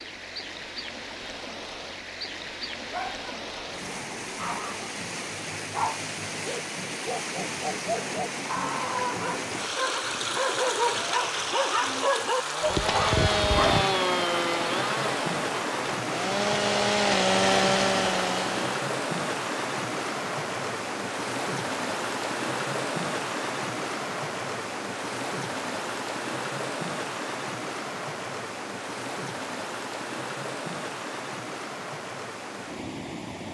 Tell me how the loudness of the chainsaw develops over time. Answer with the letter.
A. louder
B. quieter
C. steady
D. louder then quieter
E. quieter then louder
E.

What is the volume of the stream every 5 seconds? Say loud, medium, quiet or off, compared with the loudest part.
medium, loud, loud, loud, loud, loud, medium.